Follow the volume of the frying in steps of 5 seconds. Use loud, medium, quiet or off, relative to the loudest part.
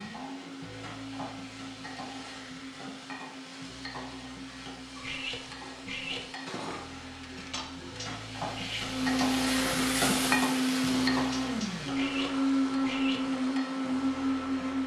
medium, loud, loud.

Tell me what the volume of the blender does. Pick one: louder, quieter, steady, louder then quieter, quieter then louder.
louder.